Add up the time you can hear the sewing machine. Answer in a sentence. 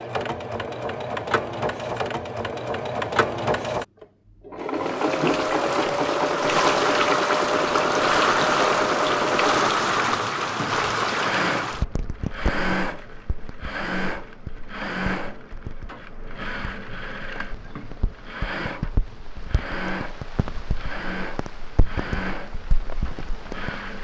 The sewing machine can be heard for 24 seconds in total.